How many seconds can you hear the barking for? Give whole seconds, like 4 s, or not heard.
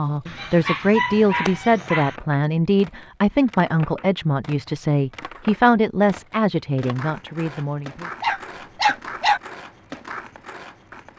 3 s.